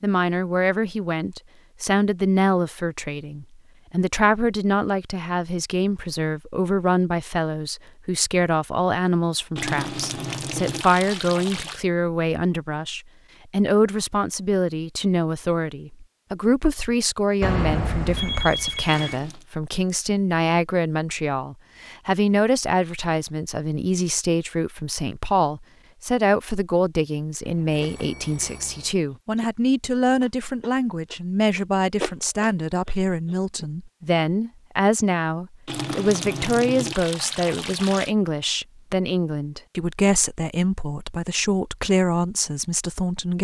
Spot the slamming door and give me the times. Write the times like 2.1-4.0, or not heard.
not heard.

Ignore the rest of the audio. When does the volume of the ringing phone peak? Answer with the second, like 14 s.
18 s.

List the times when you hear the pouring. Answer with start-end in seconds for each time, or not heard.
9.6-11.8, 19.0-19.4, 35.6-38.1.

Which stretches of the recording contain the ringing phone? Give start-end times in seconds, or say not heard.
17.4-19.2, 27.4-28.9.